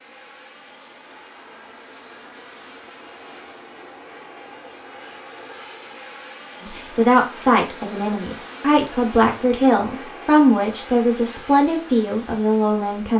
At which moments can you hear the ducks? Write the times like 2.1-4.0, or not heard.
not heard.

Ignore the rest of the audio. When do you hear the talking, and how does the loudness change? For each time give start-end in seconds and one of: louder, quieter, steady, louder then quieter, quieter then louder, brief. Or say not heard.
6.6-13.1 steady.